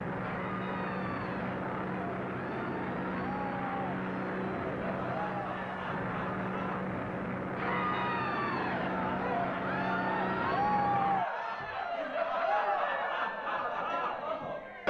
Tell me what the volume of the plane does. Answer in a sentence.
The volume of the plane stays about the same.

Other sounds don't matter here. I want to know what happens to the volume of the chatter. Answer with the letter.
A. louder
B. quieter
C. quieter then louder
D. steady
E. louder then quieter
A.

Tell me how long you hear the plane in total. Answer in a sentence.
The plane can be heard for 11 seconds in total.